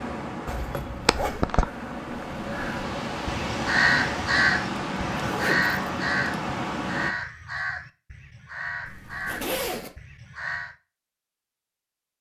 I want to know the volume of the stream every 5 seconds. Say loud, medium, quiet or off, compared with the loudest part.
loud, loud, off.